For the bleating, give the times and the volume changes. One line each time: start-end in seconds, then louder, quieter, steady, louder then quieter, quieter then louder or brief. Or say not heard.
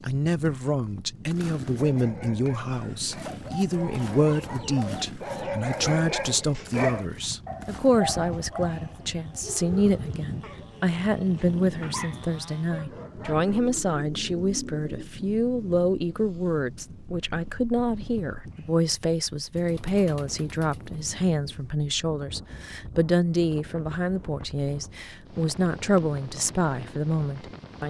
not heard.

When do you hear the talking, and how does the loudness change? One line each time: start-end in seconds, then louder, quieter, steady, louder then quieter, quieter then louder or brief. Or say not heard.
0.0-27.8 steady.